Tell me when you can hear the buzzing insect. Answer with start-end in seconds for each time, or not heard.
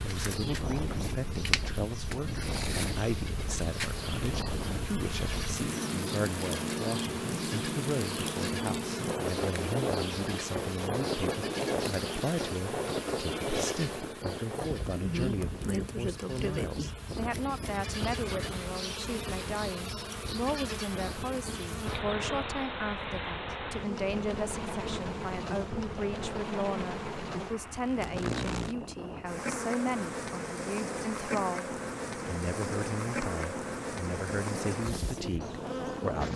0.0-36.3.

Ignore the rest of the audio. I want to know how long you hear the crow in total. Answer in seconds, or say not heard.
not heard.